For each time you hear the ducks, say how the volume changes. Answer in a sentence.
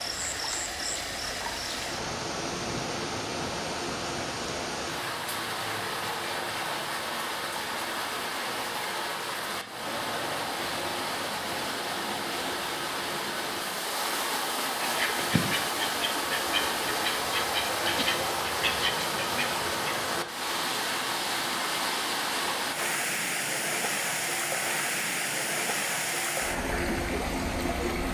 You can hear the ducks from 14.8 to 19.9 s, at a steady volume.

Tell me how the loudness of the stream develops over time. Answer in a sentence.
The loudness of the stream stays about the same.